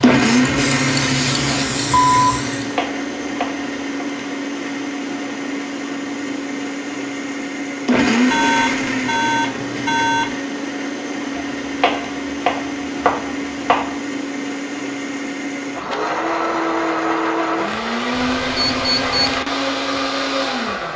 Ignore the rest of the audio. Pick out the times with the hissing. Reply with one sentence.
The hissing can be heard from 0.0 to 2.8 s.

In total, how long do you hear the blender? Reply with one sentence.
You can hear the blender for 21 seconds altogether.